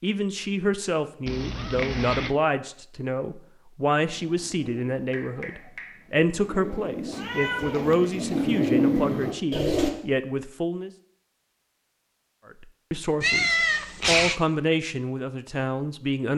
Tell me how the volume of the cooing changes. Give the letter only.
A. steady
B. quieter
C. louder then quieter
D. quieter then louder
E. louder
E.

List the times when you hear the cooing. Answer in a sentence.
The cooing can be heard from 4.0 to 9.9 s.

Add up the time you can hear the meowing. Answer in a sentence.
The meowing can be heard for 4 seconds in total.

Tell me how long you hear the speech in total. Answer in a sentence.
You can hear the speech for 15 seconds altogether.